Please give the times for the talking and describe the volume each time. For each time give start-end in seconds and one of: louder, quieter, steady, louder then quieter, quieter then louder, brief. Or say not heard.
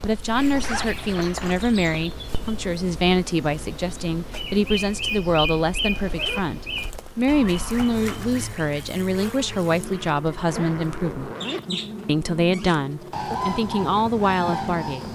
0.0-11.3 steady
12.1-15.0 brief.